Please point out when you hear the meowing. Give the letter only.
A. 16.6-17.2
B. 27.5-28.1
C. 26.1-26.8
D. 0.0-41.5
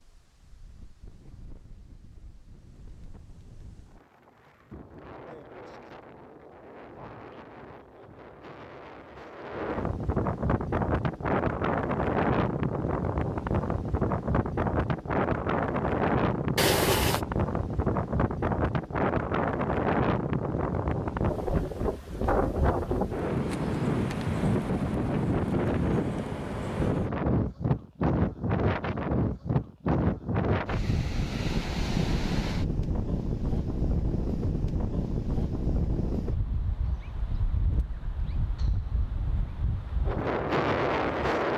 A.